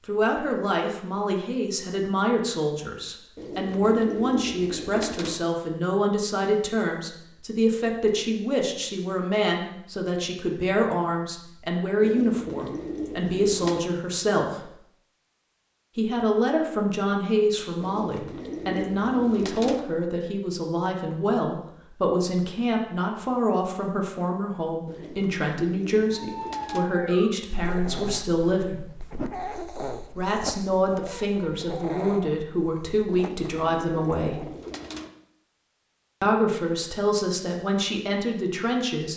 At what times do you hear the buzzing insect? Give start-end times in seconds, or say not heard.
not heard.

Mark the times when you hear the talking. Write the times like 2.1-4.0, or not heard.
0.1-14.7, 15.9-28.9, 30.1-34.5, 36.2-39.1.